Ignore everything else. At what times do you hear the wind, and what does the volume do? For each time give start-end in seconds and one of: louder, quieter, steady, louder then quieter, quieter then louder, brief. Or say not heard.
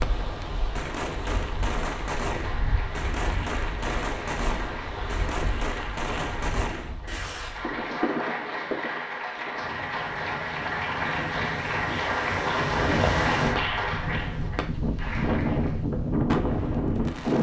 0.0-17.3 louder.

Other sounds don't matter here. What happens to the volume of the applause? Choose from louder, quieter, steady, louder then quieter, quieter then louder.
louder.